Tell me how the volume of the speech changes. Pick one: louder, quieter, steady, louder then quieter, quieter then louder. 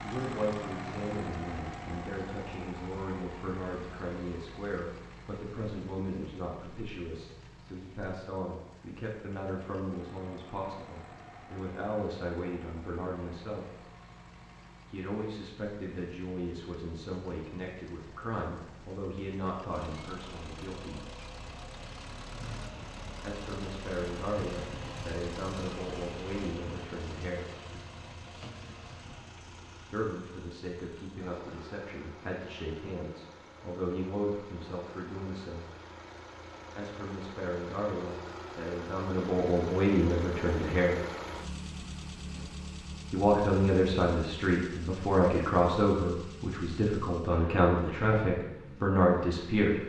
louder.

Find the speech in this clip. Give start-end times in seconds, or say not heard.
0.0-13.8, 14.9-21.1, 23.2-27.4, 29.9-35.7, 36.8-41.0, 43.1-49.8.